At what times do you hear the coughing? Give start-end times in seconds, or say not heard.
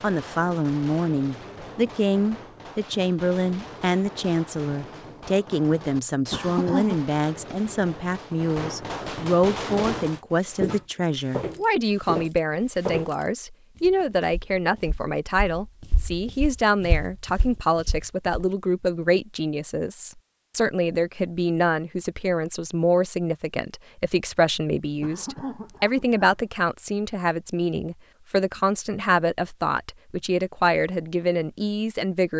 6.3-7.0, 25.0-26.4.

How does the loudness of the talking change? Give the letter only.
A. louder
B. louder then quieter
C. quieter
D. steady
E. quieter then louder
D.